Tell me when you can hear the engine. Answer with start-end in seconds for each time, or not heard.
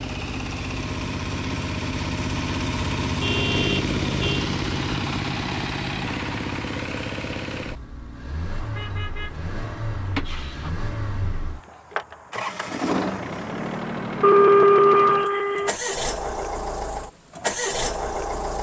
0.0-18.5.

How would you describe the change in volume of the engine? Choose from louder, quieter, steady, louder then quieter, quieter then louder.
quieter then louder.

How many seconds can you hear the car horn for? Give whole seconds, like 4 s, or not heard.
5 s.